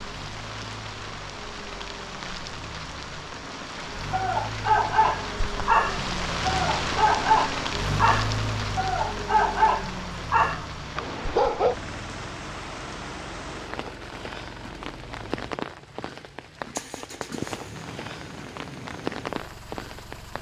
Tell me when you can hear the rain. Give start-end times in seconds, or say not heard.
0.0-20.3.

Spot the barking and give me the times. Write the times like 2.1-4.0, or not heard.
4.1-11.8.